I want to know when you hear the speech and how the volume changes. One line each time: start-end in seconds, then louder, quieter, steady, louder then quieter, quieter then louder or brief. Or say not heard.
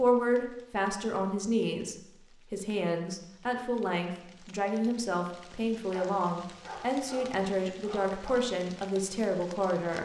0.0-9.9 steady.